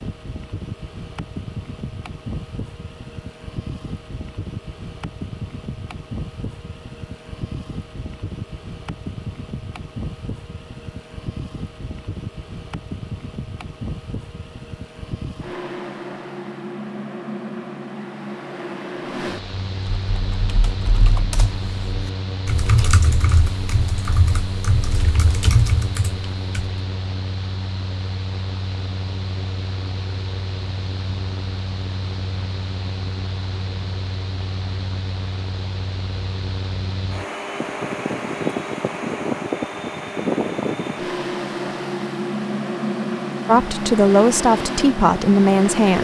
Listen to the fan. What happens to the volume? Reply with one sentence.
The volume of the fan goes up.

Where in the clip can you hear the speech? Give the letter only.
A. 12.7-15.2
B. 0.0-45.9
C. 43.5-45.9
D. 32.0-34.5
C.